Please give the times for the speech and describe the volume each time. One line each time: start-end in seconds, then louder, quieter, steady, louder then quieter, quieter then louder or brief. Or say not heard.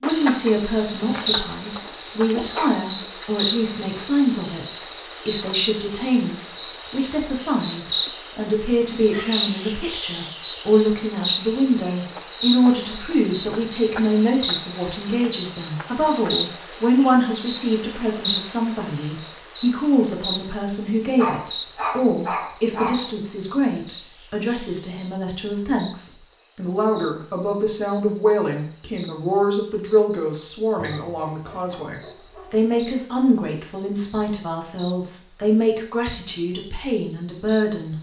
0.0-37.9 steady.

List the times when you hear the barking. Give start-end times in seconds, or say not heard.
0.5-2.8, 21.1-23.1, 30.8-32.7.